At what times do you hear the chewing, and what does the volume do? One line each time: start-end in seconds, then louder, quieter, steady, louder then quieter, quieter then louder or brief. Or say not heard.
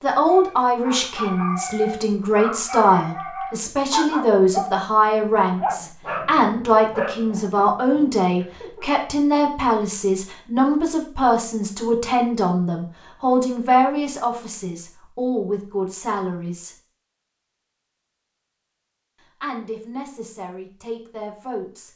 not heard.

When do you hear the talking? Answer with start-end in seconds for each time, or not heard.
0.0-16.8, 19.4-21.9.